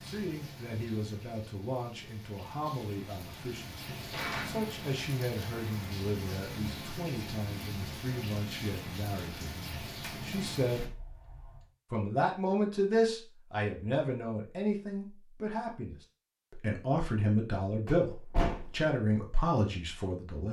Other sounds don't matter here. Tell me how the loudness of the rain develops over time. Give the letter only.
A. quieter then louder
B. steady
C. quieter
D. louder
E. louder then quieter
D.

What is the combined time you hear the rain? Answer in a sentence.
The rain can be heard for 11 seconds in total.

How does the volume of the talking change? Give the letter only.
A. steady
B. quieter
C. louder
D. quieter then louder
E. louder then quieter
C.